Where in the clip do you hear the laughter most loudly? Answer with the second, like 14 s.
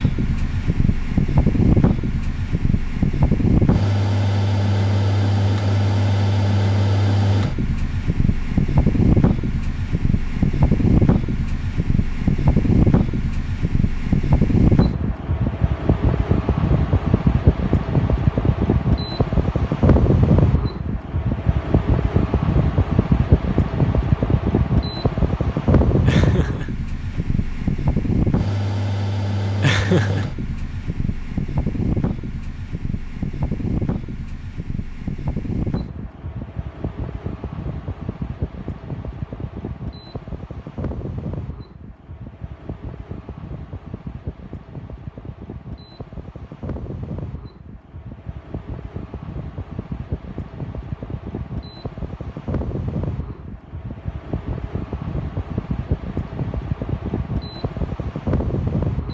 30 s.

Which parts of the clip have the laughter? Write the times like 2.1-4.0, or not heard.
26.1-26.8, 29.6-30.2.